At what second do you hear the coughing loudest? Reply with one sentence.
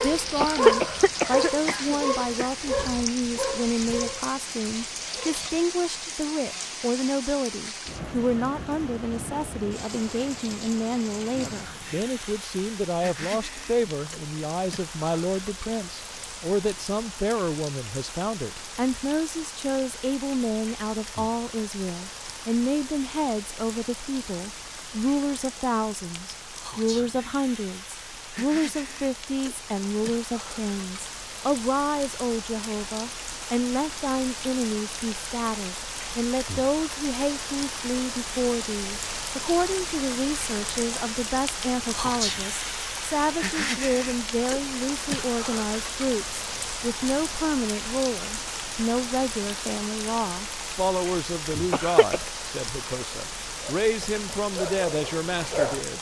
The loudest moment of the coughing is at 1 second.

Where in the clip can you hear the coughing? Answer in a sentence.
The coughing can be heard from 0.4 to 2.5 s and from 51.7 to 52.2 s.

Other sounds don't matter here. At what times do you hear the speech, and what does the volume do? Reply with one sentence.
The speech can be heard from 0.0 to 55.9 s, at a steady volume.